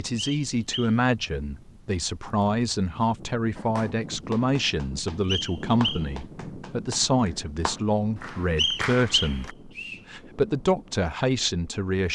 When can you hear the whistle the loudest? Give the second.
9 s.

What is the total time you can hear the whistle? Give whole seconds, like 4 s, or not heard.
3 s.